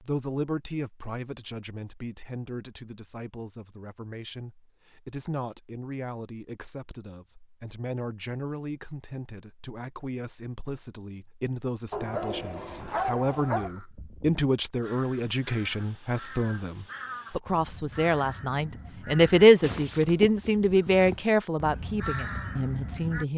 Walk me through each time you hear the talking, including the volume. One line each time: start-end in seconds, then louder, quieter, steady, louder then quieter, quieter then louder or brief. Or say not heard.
0.0-23.3 louder.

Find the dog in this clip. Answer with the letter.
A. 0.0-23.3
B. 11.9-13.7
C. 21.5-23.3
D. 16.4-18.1
B.